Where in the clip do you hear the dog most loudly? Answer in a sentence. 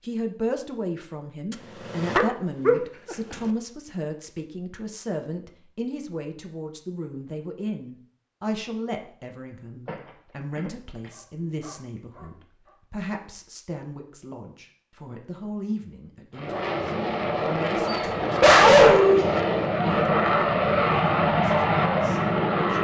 The loudest moment of the dog is at 19 seconds.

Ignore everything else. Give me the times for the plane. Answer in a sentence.
The plane can be heard from 16.3 to 22.7 s.